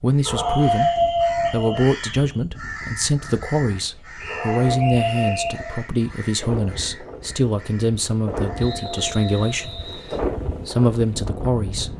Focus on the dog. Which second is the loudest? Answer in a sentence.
The volume of the dog peaks at 1 second.